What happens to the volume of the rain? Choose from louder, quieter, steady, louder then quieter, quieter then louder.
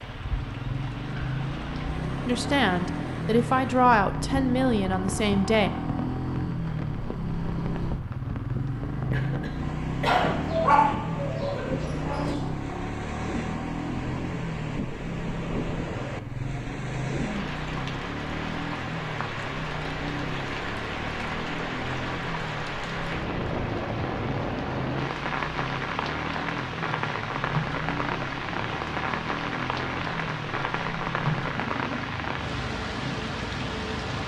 louder.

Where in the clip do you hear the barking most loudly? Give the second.
11 s.